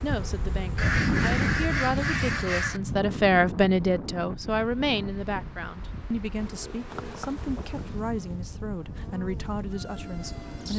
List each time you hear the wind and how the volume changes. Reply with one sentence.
The wind can be heard from 0.0 to 10.7 s, getting quieter.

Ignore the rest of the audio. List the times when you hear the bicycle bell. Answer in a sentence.
You can't hear the bicycle bell here.